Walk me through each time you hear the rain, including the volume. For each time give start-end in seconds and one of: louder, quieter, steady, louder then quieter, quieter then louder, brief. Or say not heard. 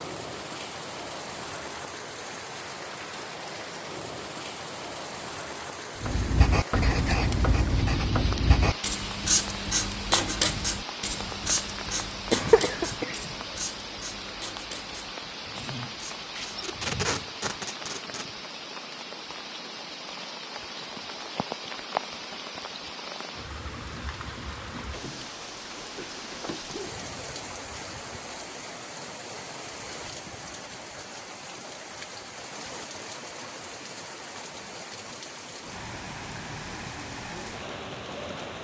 0.0-38.6 steady.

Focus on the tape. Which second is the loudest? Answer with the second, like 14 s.
17 s.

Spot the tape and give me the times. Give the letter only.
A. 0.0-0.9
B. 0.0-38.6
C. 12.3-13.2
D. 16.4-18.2
D.